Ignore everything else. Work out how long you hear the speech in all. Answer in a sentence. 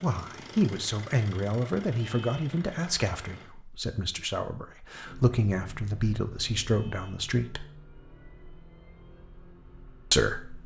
The speech can be heard for 8 seconds in total.